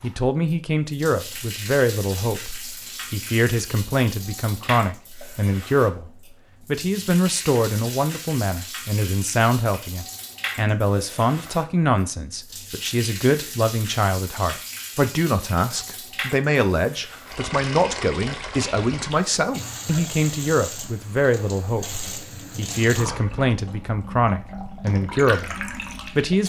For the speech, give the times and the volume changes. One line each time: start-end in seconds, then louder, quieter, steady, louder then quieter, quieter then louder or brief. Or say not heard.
0.0-26.4 steady.